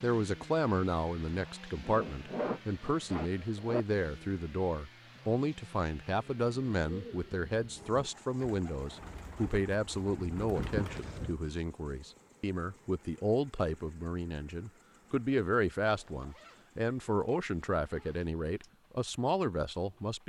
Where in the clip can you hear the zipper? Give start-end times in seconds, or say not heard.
1.8-3.9, 10.6-11.3, 15.9-18.7.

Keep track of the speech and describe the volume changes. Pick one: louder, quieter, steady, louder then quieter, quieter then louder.
steady.